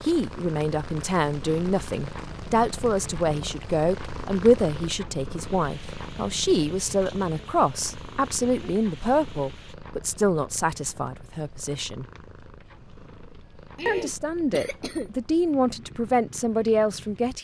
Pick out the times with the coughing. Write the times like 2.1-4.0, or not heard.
13.8-15.1.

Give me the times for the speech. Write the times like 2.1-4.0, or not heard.
0.0-12.1, 13.8-17.3.